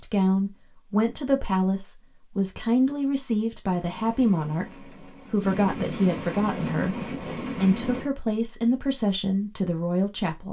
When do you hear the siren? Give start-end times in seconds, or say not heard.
not heard.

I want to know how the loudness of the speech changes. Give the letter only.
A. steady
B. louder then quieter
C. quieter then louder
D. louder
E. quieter
A.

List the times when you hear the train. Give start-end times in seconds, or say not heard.
3.6-8.1.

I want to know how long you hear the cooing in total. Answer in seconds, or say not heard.
not heard.